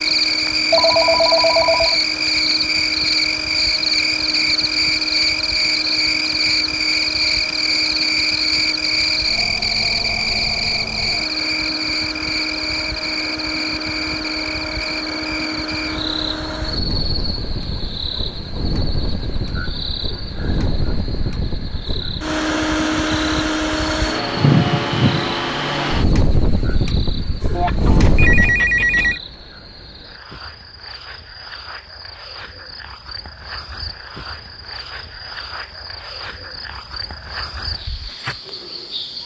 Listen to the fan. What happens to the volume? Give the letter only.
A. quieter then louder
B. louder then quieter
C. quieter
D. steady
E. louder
E.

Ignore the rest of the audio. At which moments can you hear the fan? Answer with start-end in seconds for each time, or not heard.
0.0-28.6.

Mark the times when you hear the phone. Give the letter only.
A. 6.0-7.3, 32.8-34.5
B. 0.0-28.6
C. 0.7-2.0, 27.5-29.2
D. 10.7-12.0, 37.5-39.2
C.